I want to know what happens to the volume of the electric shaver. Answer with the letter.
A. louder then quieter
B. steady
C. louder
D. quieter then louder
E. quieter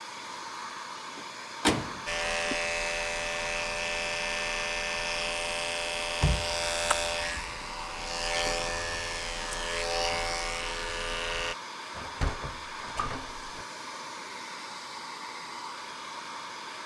B.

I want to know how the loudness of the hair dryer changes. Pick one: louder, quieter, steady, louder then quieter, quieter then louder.
steady.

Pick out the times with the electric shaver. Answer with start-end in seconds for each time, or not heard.
2.0-11.6.